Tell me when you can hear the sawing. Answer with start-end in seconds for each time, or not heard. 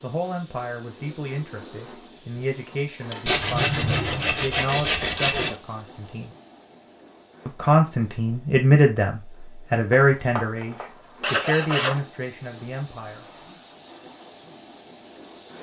3.2-5.5, 9.9-12.0.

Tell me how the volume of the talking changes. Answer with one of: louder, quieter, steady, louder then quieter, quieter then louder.
louder then quieter.